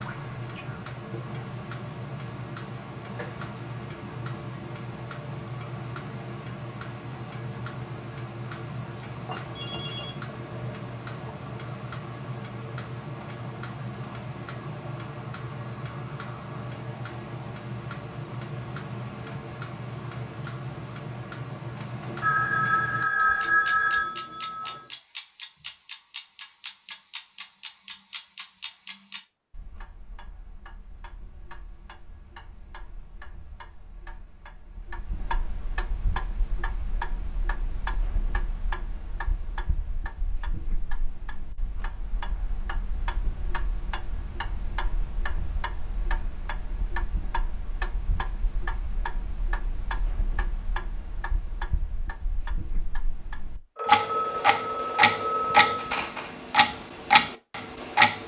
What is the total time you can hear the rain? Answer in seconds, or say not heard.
not heard.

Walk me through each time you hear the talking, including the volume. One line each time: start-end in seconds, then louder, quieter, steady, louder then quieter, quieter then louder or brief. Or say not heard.
not heard.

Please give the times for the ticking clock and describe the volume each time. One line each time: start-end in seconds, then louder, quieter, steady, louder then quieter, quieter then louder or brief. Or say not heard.
0.0-58.2 quieter then louder.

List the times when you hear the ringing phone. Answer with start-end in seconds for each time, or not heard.
9.3-10.2, 22.2-24.9, 53.8-56.0.